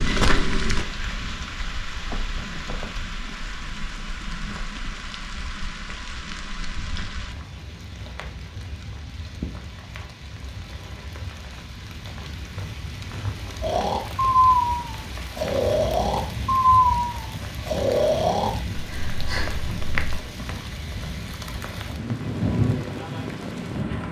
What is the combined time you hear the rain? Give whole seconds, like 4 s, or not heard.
24 s.